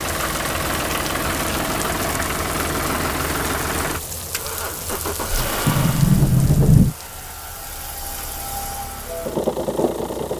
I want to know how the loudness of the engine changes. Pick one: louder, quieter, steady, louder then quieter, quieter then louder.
quieter then louder.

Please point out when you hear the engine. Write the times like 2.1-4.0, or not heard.
0.0-10.3.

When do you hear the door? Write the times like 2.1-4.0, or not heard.
0.8-2.0, 5.7-7.0.